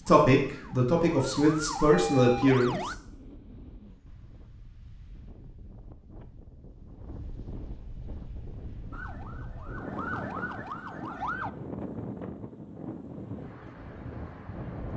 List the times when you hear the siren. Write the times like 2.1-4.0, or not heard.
0.0-3.0, 8.9-11.5.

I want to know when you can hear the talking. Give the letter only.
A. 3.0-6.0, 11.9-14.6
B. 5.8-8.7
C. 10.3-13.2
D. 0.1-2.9
D.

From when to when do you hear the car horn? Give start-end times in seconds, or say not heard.
not heard.